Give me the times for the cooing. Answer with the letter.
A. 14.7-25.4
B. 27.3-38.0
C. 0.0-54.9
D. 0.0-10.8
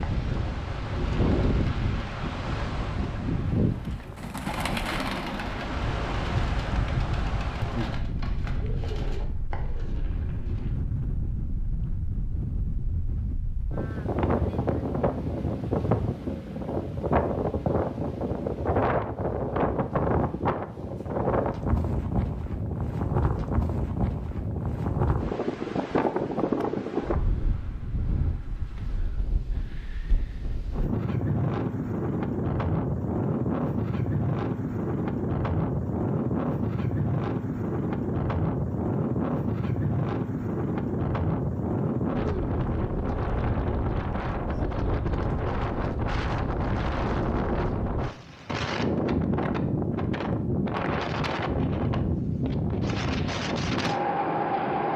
D.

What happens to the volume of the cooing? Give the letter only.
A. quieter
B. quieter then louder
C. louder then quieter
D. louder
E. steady
C.